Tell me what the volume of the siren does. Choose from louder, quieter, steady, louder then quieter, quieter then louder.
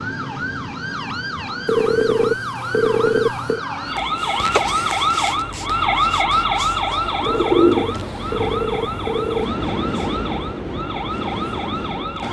louder then quieter.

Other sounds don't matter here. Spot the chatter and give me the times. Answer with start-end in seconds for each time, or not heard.
not heard.